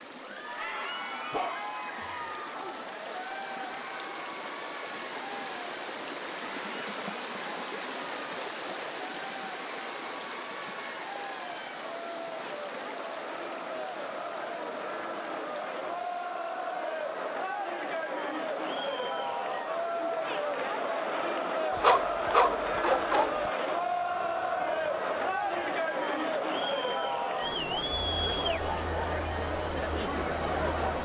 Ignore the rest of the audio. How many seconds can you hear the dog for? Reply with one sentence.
You can hear the dog for 3 seconds altogether.